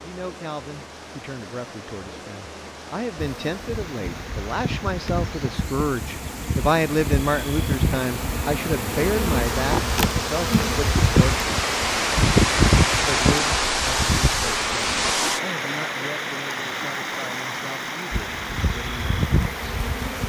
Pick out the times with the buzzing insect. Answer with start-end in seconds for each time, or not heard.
3.1-15.1, 18.1-20.2.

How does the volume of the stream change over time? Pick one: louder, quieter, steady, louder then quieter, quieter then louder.
louder then quieter.